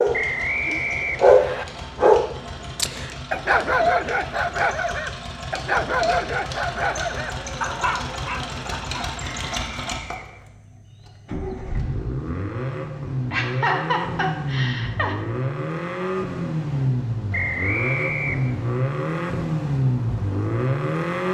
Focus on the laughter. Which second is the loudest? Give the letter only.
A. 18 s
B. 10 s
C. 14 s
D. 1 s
C.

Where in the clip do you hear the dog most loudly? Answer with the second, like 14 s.
1 s.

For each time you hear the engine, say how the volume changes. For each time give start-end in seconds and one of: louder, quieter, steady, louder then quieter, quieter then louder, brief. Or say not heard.
0.0-21.2 louder.